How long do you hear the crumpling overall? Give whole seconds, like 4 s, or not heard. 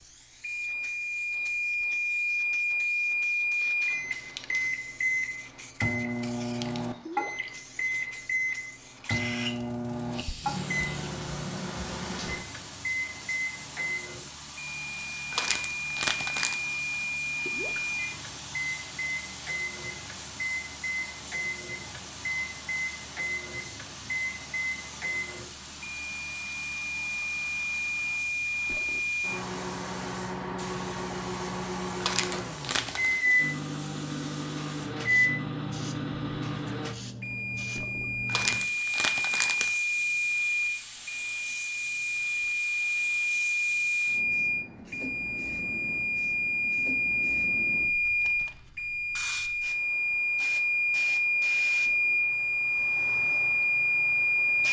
4 s.